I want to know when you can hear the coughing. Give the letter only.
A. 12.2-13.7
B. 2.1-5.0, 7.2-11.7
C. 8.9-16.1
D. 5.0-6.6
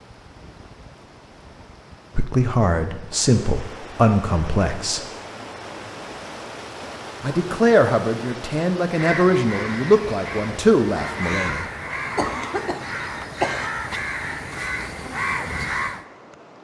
A.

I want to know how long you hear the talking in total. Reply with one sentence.
You can hear the talking for 7 seconds altogether.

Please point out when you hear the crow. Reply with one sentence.
You can hear the crow from 8.9 to 16.1 s.